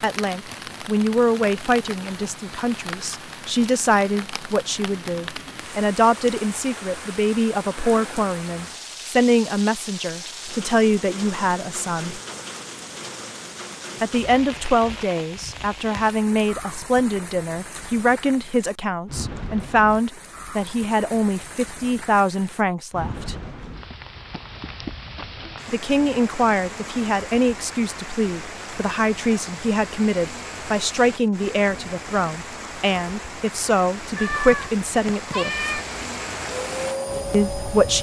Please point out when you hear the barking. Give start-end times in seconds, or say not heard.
not heard.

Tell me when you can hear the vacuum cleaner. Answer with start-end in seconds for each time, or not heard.
36.5-37.9.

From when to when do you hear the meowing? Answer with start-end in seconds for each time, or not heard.
34.1-35.9.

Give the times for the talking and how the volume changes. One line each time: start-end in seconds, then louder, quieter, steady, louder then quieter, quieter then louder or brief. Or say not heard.
0.0-12.2 steady
14.0-23.4 steady
25.7-35.7 steady
37.3-37.9 brief.